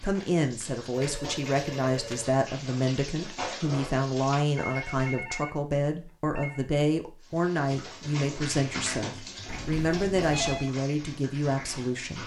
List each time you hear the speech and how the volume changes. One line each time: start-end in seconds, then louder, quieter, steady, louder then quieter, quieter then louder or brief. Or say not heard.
0.0-12.2 steady.